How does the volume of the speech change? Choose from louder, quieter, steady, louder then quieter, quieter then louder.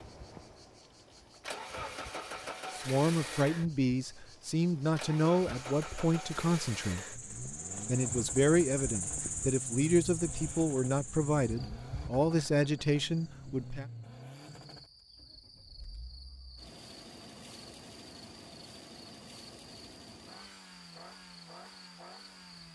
steady.